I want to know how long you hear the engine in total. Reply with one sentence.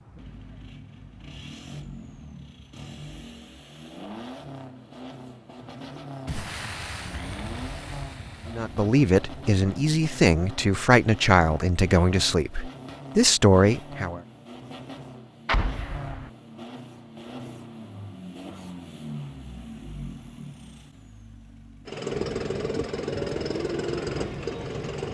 The engine can be heard for 25 seconds in total.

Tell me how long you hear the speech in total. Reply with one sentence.
You can hear the speech for 6 seconds altogether.